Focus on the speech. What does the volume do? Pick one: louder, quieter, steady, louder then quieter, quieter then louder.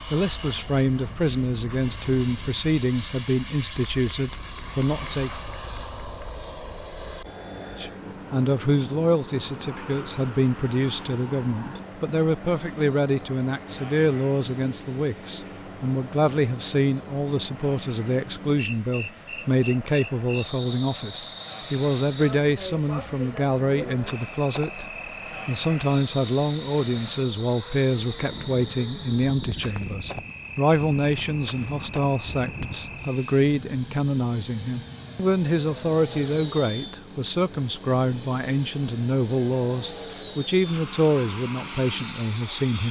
steady.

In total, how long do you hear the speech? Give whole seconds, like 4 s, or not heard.
40 s.